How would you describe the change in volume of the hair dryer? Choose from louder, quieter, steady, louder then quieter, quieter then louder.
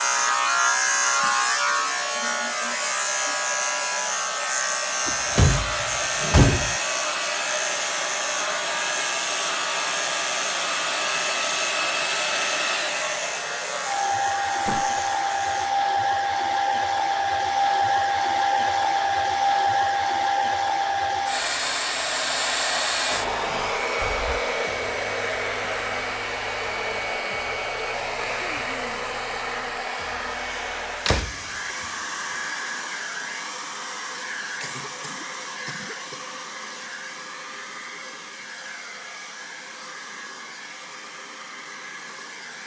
louder then quieter.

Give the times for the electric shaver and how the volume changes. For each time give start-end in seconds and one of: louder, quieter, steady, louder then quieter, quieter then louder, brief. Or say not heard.
0.0-15.8 quieter.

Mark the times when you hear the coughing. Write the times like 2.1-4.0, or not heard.
34.6-36.4.